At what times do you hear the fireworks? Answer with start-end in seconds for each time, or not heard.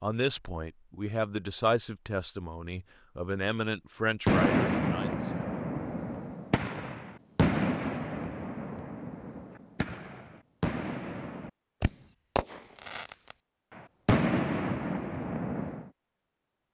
4.2-15.8.